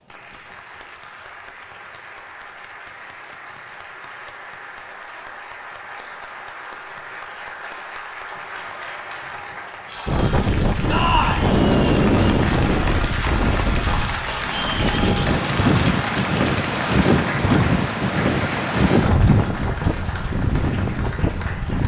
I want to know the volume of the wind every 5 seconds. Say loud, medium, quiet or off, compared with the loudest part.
off, off, loud, loud, medium.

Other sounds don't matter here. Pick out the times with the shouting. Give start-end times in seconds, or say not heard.
10.8-11.5.